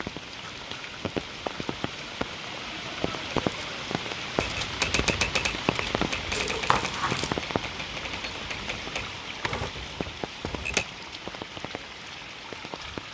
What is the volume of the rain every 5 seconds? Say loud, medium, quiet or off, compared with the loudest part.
loud, loud, medium.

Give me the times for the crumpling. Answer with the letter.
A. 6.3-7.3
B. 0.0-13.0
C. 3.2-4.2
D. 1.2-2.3
A.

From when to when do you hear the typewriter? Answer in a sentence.
The typewriter can be heard from 4.4 to 10.8 s.